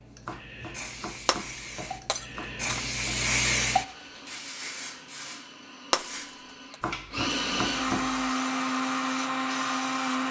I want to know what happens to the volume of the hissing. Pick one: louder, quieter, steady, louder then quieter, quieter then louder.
louder then quieter.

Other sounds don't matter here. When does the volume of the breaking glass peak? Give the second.
6 s.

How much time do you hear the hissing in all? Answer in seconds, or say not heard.
10 s.